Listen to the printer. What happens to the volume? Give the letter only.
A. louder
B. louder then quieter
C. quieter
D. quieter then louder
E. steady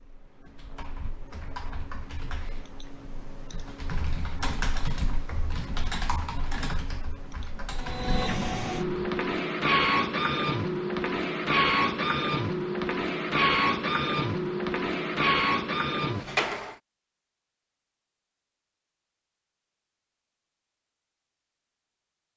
E.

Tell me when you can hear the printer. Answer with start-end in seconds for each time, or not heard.
7.8-16.8.